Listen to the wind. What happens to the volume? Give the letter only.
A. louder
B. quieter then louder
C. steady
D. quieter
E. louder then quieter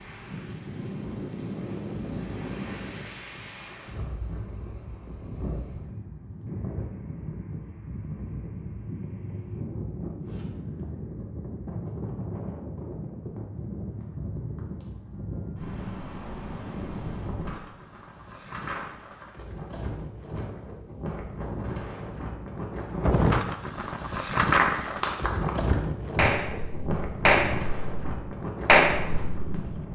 A.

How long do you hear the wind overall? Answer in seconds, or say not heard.
30 s.